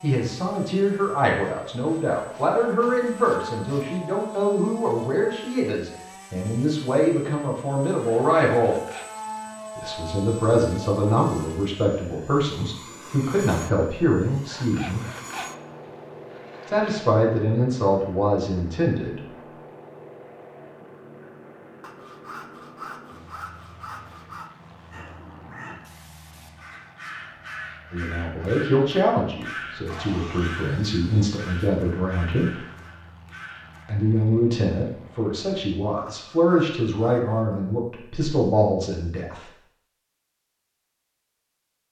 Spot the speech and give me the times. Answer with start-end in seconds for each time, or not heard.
0.0-8.8, 9.8-15.1, 16.6-19.2, 27.9-32.5, 33.9-39.5.